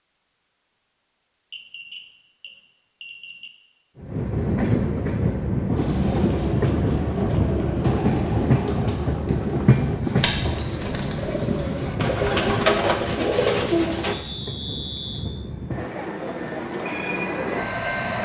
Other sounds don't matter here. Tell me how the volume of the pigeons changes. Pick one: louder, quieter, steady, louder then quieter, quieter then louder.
louder.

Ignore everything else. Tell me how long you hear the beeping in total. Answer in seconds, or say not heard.
3 s.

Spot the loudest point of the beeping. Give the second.
15 s.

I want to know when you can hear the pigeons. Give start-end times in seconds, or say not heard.
5.8-14.2.